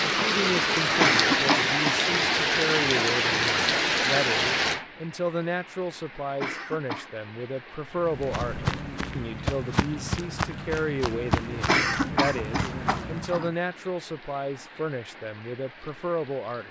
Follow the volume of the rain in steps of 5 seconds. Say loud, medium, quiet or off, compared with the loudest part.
loud, quiet, quiet, quiet.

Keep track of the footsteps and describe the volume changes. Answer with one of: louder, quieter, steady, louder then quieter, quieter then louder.
steady.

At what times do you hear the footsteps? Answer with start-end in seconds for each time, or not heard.
8.0-13.5.